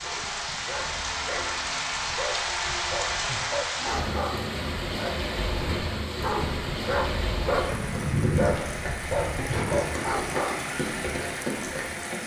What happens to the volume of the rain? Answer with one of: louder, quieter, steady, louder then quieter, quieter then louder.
steady.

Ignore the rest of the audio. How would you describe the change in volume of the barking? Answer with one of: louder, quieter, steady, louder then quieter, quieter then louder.
louder.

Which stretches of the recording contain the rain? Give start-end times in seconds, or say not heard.
0.0-12.2.